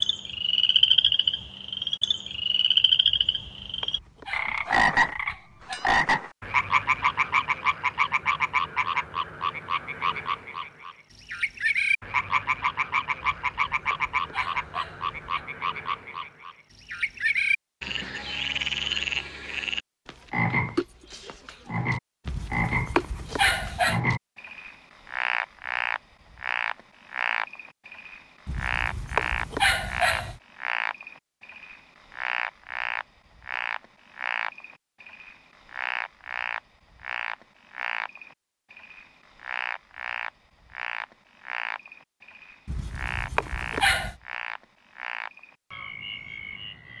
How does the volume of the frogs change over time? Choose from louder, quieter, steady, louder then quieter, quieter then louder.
quieter.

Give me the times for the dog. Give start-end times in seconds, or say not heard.
3.1-5.8, 13.2-15.4, 22.2-24.0, 28.4-30.4, 42.6-44.1.